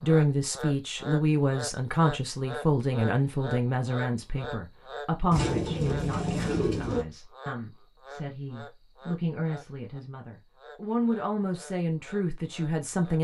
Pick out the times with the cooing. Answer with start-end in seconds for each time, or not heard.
5.3-7.0.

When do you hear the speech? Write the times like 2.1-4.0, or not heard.
0.0-13.1.